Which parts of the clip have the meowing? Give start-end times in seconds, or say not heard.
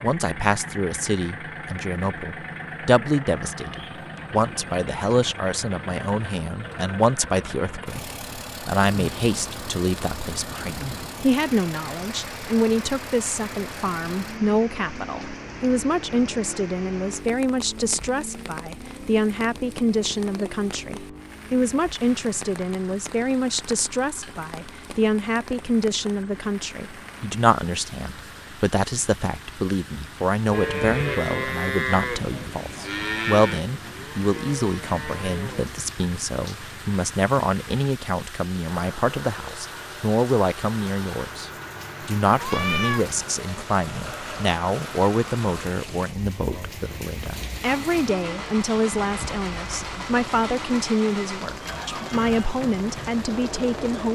42.4-43.0.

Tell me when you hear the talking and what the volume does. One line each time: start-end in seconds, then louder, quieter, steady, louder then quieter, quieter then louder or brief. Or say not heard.
0.0-54.0 steady.